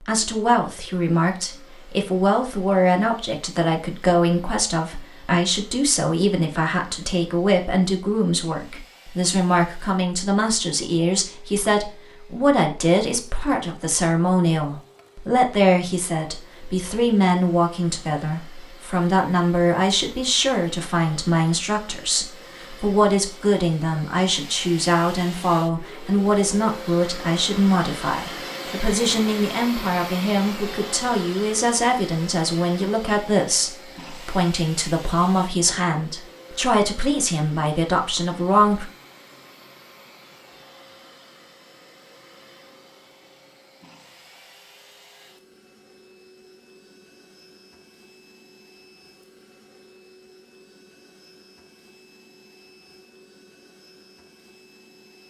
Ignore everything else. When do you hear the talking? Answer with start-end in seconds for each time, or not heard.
0.0-38.9.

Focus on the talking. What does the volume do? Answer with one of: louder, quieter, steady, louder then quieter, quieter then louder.
steady.